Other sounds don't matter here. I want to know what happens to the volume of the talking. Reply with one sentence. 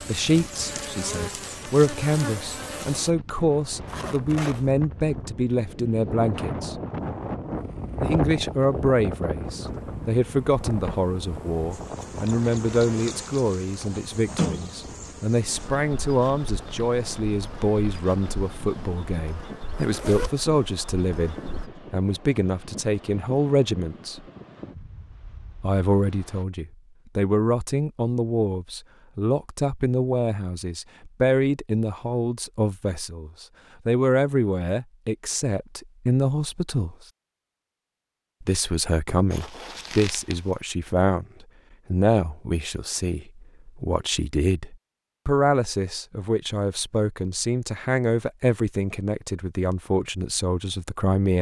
The volume of the talking stays about the same.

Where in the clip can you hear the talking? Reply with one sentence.
The talking can be heard from 0.0 to 6.8 s, from 8.0 to 24.2 s, from 25.6 to 37.0 s and from 38.4 to 51.3 s.